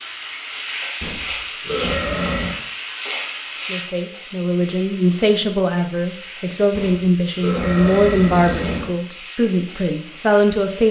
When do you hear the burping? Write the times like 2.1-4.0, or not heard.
1.0-2.5, 6.7-8.9.